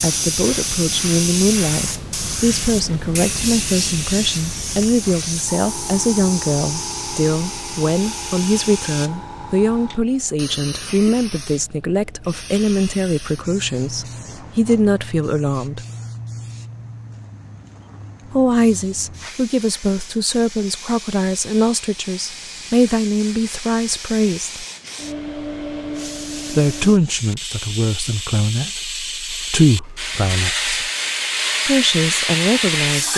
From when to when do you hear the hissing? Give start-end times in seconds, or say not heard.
0.0-33.1.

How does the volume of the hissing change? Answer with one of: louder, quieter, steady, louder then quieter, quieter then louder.
quieter then louder.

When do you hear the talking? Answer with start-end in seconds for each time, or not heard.
0.0-15.8, 18.3-24.6, 26.5-30.9, 31.6-33.1.